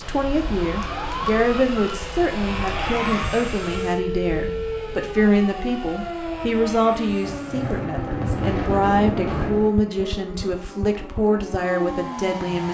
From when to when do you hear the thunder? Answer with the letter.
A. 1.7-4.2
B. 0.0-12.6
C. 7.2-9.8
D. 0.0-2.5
C.